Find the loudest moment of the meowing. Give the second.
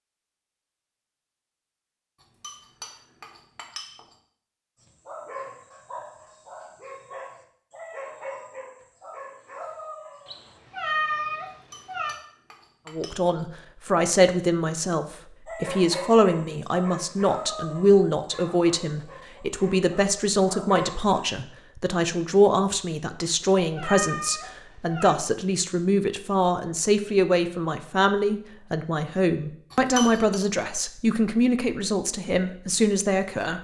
11 s.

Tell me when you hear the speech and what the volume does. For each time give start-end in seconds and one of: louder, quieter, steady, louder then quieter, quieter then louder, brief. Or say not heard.
12.9-33.6 steady.